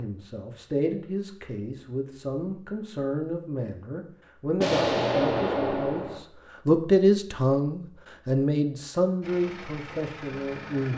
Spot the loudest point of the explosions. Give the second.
5 s.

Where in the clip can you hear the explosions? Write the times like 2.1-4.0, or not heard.
4.6-6.2.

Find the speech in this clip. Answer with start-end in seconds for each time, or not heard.
0.0-10.9.